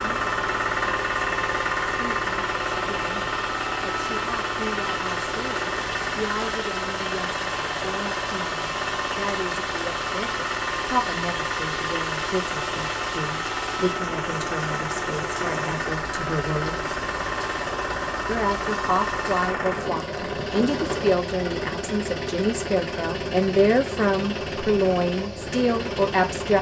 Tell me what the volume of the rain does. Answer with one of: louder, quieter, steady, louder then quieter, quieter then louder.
steady.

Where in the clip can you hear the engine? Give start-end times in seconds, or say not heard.
0.0-26.5.